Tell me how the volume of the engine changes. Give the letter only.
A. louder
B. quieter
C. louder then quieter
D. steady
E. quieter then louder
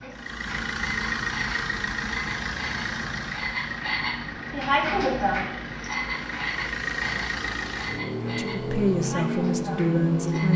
E.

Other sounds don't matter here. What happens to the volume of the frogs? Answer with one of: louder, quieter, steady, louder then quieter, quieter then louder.
louder then quieter.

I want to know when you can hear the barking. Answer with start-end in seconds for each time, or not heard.
not heard.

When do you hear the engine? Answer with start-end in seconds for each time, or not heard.
0.0-10.5.